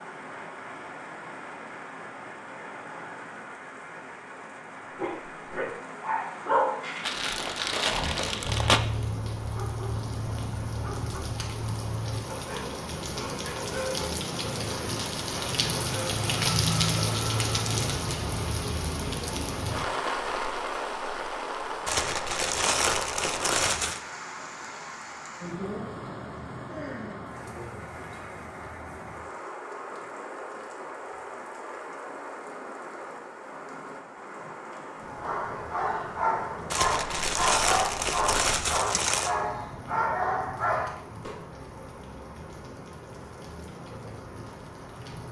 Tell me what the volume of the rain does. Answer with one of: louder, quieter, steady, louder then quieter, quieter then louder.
louder then quieter.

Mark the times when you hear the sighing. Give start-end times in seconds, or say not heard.
26.6-27.3.